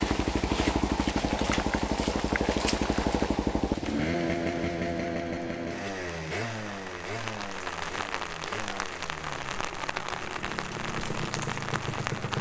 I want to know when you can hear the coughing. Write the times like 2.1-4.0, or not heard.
not heard.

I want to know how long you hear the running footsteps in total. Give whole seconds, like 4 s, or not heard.
not heard.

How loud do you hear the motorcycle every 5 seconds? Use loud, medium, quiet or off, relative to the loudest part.
loud, medium, medium.